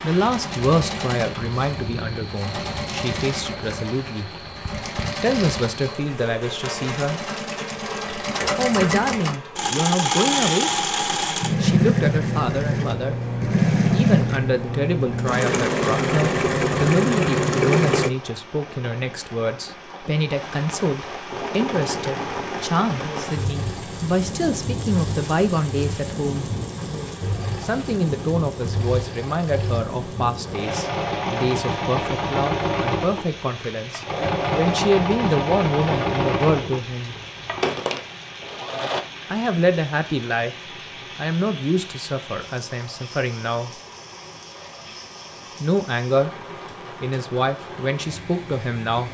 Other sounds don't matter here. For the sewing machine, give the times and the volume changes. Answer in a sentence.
The sewing machine can be heard from 0.1 to 18.1 s, getting louder; and from 21.3 to 39.0 s, getting louder.